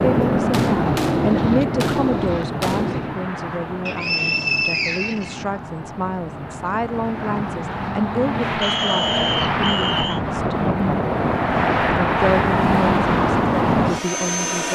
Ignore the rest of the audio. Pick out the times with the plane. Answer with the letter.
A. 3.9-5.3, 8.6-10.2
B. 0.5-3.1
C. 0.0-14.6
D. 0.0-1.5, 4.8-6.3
C.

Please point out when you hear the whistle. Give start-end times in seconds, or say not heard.
3.9-5.3, 8.6-10.2.